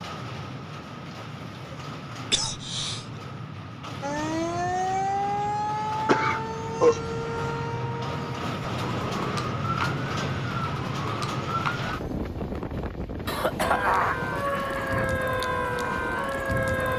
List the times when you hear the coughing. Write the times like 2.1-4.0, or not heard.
2.3-3.0, 6.0-7.0, 13.2-15.1.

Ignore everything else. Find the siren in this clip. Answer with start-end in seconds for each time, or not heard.
4.0-11.9, 13.6-16.9.